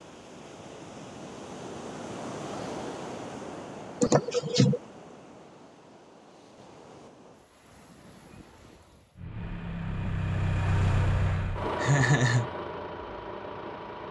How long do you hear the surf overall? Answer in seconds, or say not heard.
9 s.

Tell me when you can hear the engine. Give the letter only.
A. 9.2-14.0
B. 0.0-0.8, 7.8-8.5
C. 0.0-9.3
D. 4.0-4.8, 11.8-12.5
A.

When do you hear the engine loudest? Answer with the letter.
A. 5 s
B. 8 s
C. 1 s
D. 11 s
D.